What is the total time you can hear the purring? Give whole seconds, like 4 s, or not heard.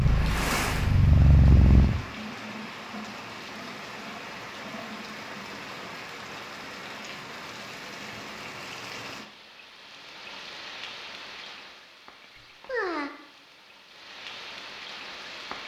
2 s.